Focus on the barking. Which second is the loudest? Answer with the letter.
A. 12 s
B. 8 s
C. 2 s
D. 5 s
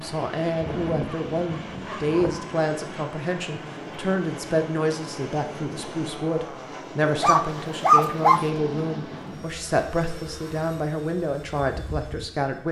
B.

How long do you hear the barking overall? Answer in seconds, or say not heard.
3 s.